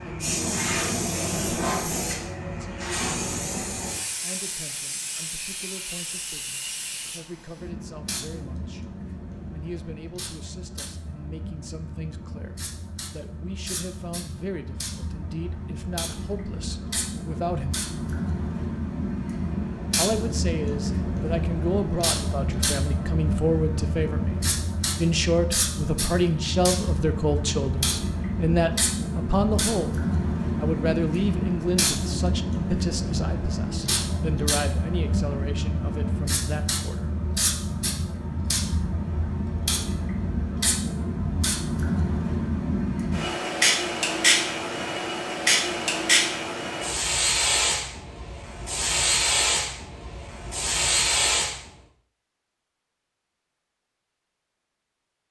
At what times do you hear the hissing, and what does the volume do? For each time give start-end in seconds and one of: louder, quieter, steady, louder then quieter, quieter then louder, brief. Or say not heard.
0.0-51.6 louder.